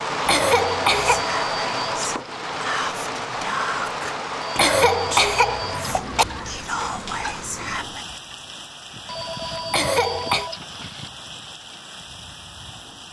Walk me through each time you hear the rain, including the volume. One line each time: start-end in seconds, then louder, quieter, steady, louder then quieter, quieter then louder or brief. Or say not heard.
0.0-13.0 quieter.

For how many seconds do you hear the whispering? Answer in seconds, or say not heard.
7 s.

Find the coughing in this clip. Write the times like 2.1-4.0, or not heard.
0.2-1.2, 4.5-6.2, 9.7-10.5.